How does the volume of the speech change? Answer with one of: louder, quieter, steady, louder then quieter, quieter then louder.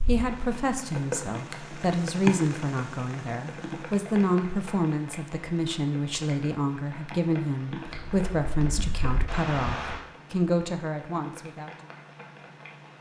steady.